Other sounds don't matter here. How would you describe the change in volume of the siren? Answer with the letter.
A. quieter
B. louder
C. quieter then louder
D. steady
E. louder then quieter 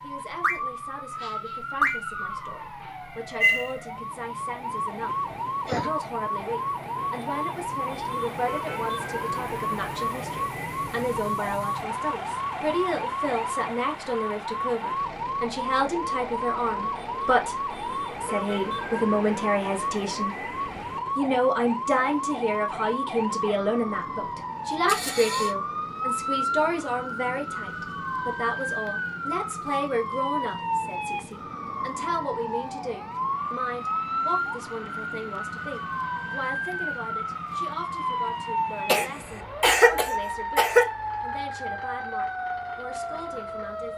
D.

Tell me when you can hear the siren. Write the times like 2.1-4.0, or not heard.
0.0-43.9.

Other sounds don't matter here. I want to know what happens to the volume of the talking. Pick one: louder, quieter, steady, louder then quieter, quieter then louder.
louder then quieter.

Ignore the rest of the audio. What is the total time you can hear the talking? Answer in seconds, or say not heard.
43 s.